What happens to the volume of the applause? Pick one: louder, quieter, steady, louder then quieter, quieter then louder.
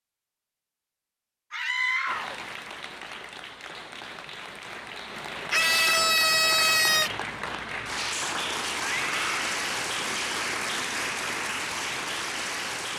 louder.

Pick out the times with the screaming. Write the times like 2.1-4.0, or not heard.
1.5-2.4, 5.5-7.1, 8.8-9.4.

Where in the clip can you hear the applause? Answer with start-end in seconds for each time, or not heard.
2.0-12.9.